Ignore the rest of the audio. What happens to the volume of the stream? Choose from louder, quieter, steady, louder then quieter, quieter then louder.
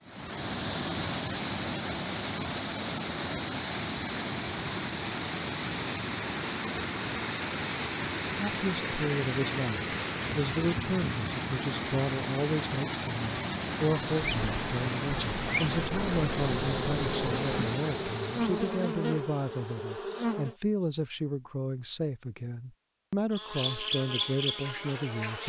steady.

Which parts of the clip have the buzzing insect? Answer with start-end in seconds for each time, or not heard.
14.2-20.6, 23.3-25.4.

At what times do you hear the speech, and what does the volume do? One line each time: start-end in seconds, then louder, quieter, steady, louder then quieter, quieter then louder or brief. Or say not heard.
8.2-25.4 steady.